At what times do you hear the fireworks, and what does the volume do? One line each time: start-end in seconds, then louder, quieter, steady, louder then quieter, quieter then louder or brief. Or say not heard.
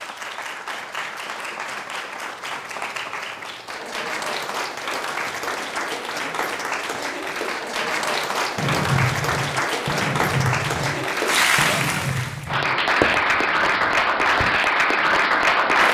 8.6-14.6 quieter.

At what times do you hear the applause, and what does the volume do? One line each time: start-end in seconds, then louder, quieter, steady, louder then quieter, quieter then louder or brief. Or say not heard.
0.0-15.8 louder.